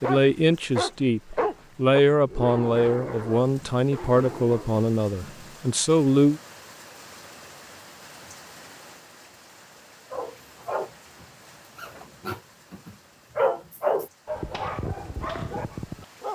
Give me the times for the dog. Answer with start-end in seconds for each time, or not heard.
0.0-4.8, 10.1-16.3.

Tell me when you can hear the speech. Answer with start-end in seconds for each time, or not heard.
0.0-6.4.